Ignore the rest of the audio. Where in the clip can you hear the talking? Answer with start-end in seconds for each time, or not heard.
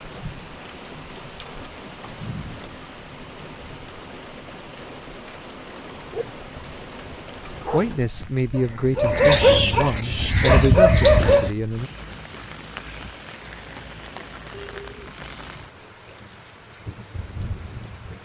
7.7-11.9.